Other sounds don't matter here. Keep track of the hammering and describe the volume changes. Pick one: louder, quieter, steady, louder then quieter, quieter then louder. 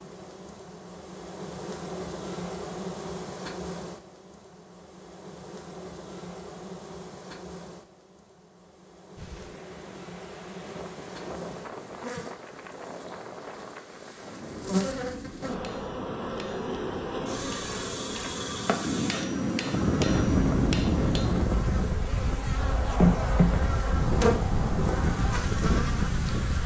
louder.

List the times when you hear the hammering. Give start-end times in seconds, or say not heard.
14.2-21.4.